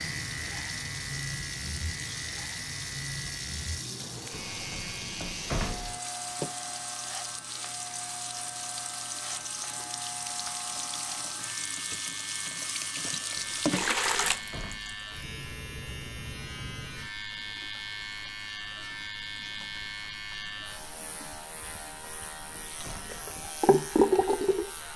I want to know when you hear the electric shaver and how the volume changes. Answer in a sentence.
You can hear the electric shaver from 0.0 to 24.9 s, at a steady volume.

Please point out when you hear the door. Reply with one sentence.
You can hear the door from 4.3 to 6.0 s, from 13.3 to 15.0 s and from 21.9 to 23.3 s.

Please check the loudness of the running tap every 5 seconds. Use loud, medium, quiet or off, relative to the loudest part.
medium, medium, loud, quiet, loud.